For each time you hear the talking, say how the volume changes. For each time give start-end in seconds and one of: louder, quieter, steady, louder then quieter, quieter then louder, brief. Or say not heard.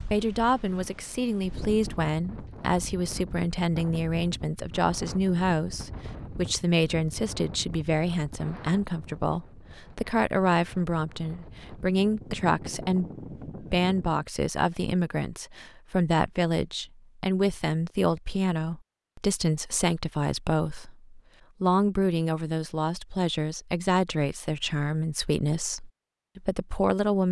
0.1-27.2 steady.